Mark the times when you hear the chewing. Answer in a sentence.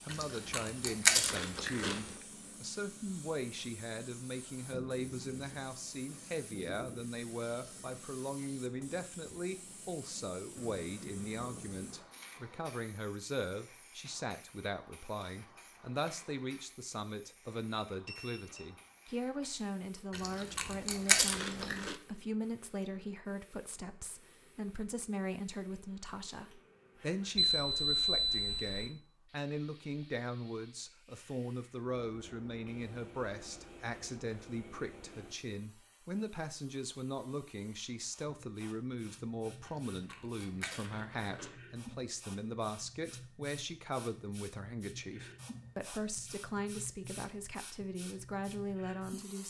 You can hear the chewing from 0.1 to 2.1 s, from 20.1 to 21.9 s and from 39.6 to 41.5 s.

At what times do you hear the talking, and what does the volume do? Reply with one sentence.
The talking can be heard from 0.0 to 49.4 s, at a steady volume.